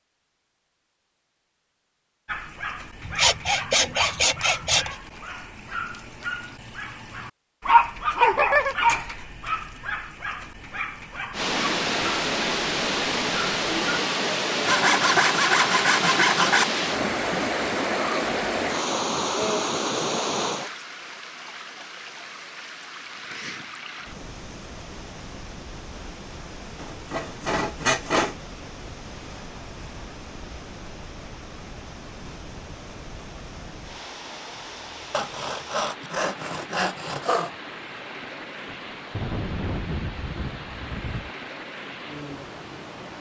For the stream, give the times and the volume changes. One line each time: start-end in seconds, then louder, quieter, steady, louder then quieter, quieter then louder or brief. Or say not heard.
11.3-43.1 quieter.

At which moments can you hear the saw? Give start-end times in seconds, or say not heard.
3.0-5.0, 14.7-16.6, 26.8-28.4, 35.1-37.5.